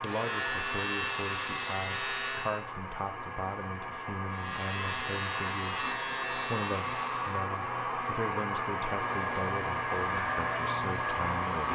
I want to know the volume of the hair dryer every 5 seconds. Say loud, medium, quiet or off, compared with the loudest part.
medium, loud, loud.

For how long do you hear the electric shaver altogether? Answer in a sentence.
The electric shaver can be heard for 9 seconds in total.